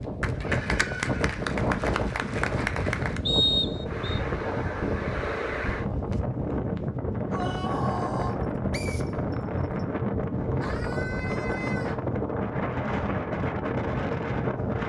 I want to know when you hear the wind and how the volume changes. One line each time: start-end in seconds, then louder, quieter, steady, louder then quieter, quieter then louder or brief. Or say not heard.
0.0-14.8 steady.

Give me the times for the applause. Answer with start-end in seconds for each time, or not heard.
0.0-3.2.